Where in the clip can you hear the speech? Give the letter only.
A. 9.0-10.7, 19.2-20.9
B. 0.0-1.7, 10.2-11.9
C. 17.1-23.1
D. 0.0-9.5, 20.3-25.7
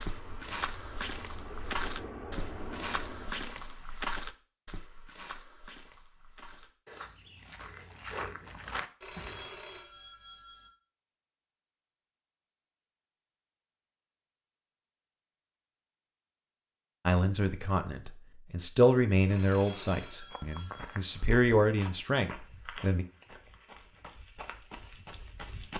C.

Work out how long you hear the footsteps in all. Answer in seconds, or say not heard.
15 s.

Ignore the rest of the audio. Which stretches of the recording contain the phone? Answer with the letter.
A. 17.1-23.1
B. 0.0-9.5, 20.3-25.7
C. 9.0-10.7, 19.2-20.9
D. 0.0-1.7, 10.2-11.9
C.